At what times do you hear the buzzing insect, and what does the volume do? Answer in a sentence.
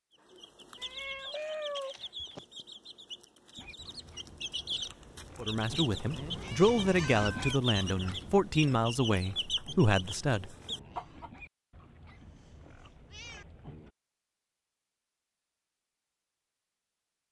You can't hear the buzzing insect here.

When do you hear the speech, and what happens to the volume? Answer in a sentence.
The speech can be heard from 5.4 to 10.5 s, at a steady volume.